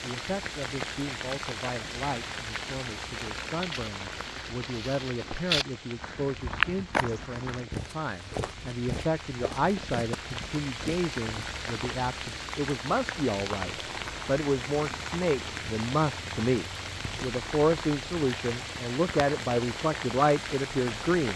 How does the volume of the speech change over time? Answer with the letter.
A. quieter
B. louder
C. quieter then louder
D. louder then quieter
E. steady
B.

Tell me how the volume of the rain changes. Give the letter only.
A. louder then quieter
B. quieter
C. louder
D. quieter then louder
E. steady
D.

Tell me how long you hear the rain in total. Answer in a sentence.
You can hear the rain for 21 seconds altogether.